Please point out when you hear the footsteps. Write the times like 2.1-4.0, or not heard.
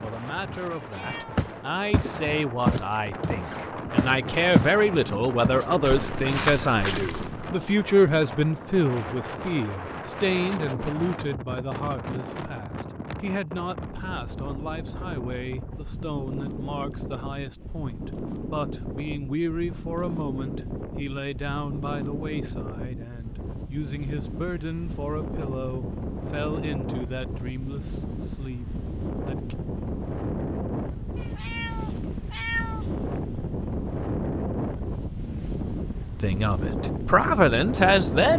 1.4-4.8, 5.4-7.5.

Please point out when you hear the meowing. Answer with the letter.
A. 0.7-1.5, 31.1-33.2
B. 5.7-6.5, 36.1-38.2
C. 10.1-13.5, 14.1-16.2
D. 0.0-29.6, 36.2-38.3
A.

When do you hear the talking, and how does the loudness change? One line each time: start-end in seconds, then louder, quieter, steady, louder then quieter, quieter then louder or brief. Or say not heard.
0.0-29.6 quieter
36.2-38.3 brief.